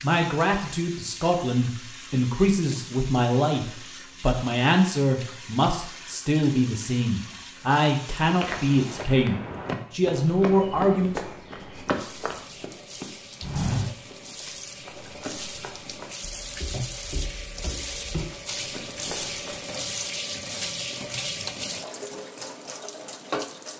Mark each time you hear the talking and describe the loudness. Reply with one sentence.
You can hear the talking from 0.0 to 11.2 s, at a steady volume.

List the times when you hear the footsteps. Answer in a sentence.
You can hear the footsteps from 8.2 to 19.6 s.